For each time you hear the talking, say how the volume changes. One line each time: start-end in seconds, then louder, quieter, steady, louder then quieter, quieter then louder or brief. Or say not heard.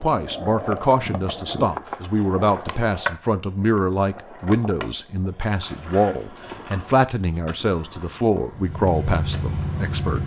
0.0-10.2 steady.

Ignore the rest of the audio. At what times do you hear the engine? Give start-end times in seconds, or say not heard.
8.5-10.2.